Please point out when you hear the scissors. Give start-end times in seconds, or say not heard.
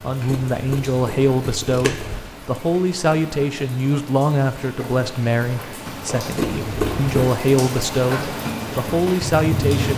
0.2-2.2, 6.3-7.3.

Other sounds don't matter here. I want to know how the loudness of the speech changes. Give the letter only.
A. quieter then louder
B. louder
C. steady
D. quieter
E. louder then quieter
C.